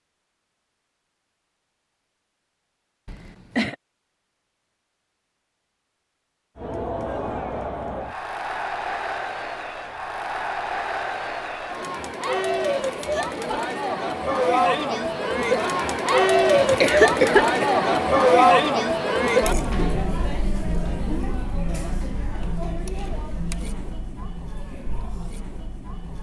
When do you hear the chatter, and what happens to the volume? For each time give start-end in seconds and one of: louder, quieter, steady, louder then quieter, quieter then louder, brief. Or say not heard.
6.5-26.1 louder then quieter.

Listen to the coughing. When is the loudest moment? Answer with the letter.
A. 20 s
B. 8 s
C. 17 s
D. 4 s
C.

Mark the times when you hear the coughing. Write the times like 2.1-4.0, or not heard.
3.0-3.8, 16.6-17.7.